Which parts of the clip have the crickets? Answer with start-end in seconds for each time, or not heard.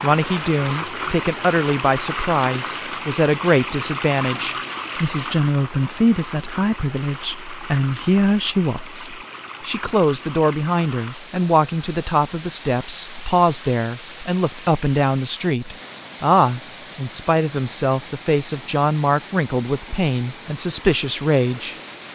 not heard.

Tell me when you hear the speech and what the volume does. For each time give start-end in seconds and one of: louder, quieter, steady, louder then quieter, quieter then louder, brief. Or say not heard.
0.0-21.8 steady.